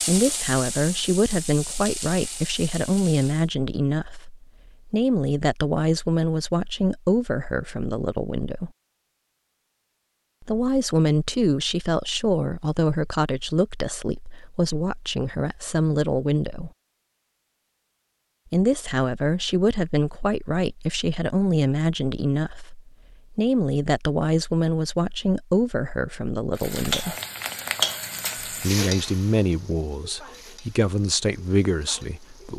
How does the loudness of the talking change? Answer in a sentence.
The loudness of the talking stays about the same.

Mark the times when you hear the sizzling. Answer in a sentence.
You can hear the sizzling from 0.0 to 3.5 s and from 26.6 to 32.5 s.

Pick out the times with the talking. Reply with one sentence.
The talking can be heard from 0.1 to 8.7 s, from 10.4 to 16.7 s, from 18.5 to 27.1 s and from 28.4 to 32.5 s.